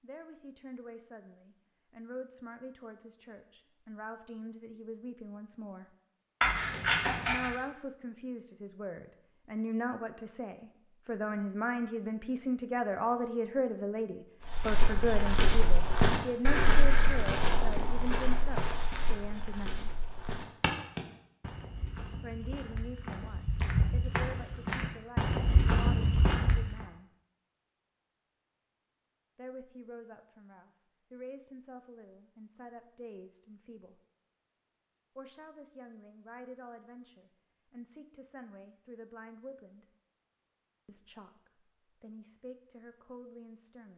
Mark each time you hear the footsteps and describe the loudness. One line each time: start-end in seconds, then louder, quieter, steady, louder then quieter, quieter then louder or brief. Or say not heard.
14.4-26.8 quieter then louder.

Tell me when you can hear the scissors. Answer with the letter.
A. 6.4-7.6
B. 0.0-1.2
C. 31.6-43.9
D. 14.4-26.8
A.